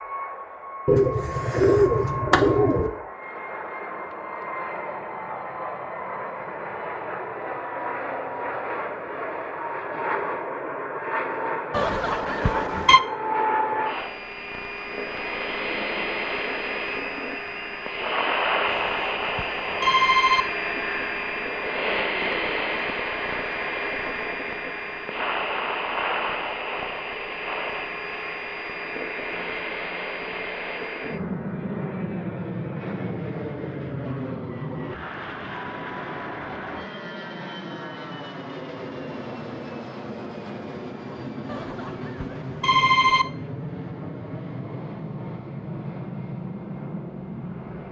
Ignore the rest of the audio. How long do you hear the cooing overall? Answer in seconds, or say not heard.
2 s.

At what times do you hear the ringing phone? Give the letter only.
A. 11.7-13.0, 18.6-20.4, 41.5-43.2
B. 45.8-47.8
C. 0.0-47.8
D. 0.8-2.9
A.